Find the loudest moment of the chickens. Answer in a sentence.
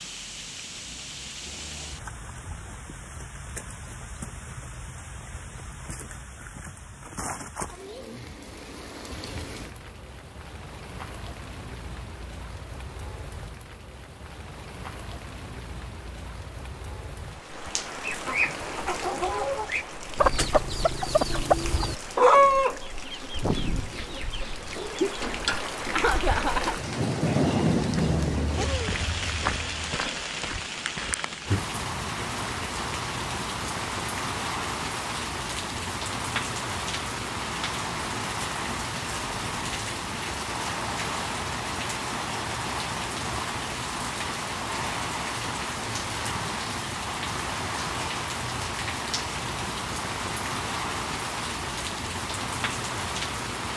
The volume of the chickens peaks at 22 seconds.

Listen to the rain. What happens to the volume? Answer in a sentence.
The volume of the rain goes up.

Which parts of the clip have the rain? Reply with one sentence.
You can hear the rain from 0.0 to 53.7 s.